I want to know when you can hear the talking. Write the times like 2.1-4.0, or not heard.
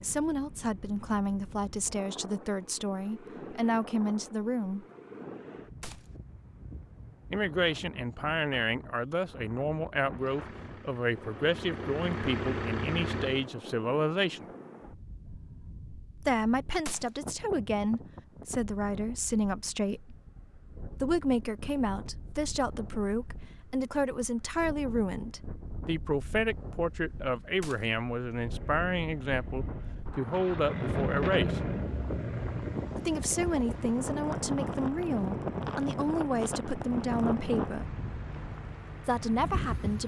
0.0-4.8, 7.3-14.4, 16.2-20.1, 21.0-31.6, 33.0-38.0, 39.0-40.0.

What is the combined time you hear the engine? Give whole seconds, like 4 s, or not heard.
15 s.